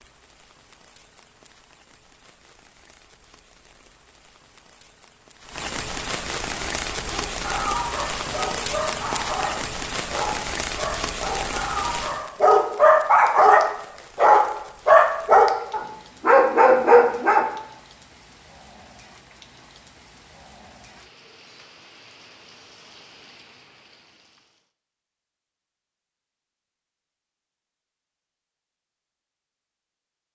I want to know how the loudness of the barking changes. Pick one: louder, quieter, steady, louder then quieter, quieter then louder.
louder.